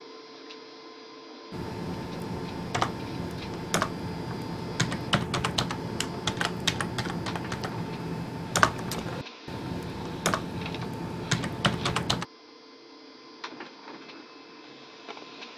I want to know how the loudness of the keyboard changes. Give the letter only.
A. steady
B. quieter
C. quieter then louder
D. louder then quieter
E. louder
A.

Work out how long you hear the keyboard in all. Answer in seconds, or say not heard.
11 s.